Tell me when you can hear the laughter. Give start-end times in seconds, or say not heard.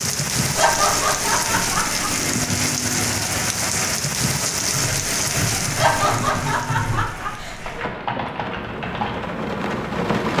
0.6-2.2, 5.8-7.8.